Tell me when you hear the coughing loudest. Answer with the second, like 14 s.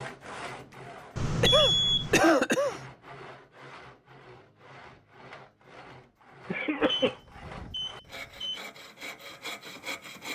2 s.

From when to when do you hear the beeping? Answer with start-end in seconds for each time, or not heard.
1.1-2.2, 6.8-8.6.